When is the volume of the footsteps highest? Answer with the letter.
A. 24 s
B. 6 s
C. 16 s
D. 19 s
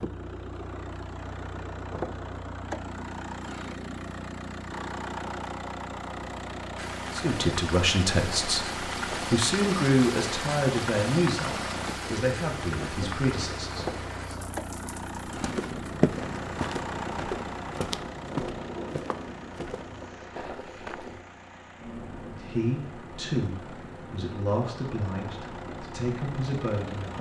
C.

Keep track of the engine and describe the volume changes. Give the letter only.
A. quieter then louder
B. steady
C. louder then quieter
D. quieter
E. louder
D.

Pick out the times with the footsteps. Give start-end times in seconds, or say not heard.
15.3-21.2.